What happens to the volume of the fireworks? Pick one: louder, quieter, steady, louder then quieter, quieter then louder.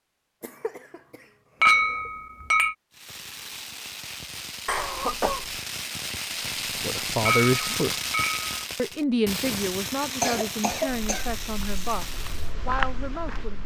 louder then quieter.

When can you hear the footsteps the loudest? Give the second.
13 s.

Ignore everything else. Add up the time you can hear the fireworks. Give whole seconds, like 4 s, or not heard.
10 s.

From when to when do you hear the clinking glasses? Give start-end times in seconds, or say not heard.
1.6-2.8, 7.2-8.6.